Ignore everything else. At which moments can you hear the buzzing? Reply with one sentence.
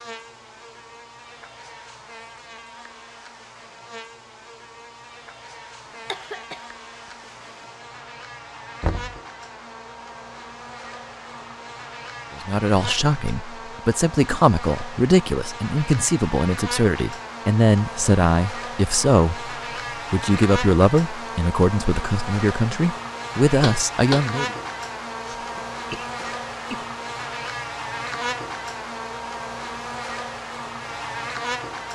The buzzing can be heard from 0.0 to 31.9 s.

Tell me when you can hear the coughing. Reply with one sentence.
The coughing can be heard from 5.8 to 7.7 s and from 25.2 to 26.9 s.